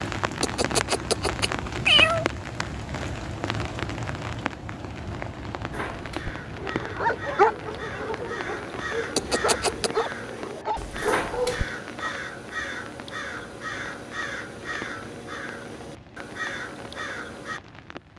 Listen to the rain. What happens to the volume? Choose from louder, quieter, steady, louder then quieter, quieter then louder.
quieter.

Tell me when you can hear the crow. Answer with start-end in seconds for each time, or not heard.
5.7-17.6.